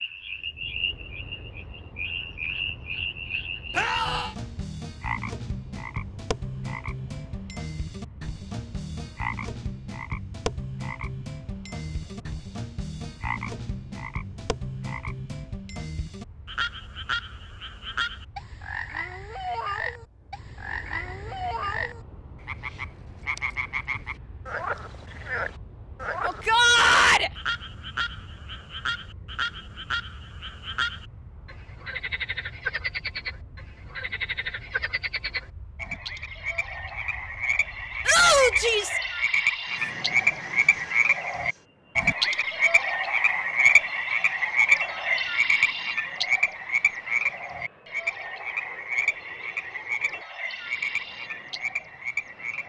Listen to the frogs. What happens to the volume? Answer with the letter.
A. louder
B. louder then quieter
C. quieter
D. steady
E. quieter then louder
A.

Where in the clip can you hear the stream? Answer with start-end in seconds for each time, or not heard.
not heard.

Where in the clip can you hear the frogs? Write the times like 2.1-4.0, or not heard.
0.0-52.6.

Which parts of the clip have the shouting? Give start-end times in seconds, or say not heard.
3.8-4.3, 26.2-27.3, 38.0-39.0.